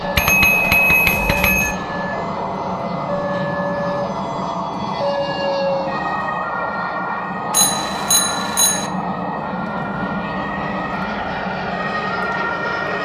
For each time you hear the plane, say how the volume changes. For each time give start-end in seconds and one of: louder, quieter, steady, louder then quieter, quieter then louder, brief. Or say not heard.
0.0-13.0 steady.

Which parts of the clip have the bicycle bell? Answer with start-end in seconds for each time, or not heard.
0.1-1.8, 7.5-8.9.